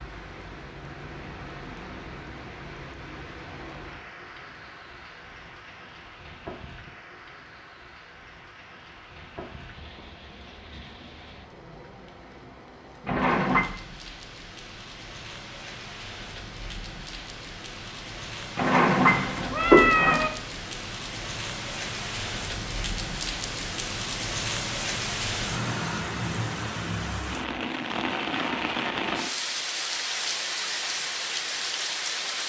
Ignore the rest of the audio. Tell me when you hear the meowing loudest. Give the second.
20 s.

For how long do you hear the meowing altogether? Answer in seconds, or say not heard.
2 s.